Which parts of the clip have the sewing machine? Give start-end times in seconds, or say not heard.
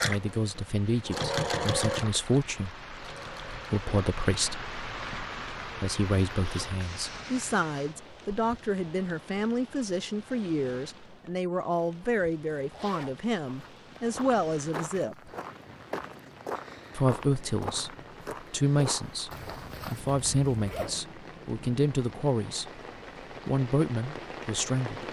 0.0-3.7.